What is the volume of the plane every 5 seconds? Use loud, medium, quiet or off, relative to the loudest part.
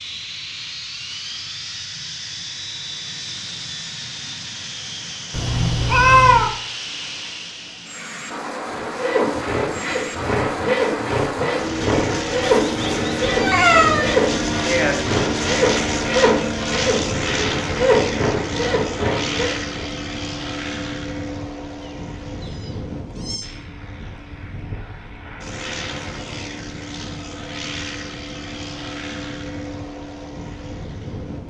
medium, medium, loud, loud, medium, medium, medium.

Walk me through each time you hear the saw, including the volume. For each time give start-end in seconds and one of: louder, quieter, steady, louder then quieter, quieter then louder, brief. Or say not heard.
8.7-19.9 steady.